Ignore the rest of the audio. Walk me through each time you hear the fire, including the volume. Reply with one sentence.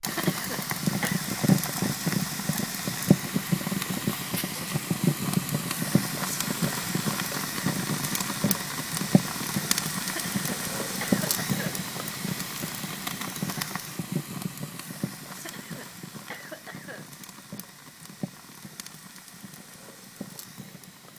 You can hear the fire from 0.0 to 21.1 s, getting quieter.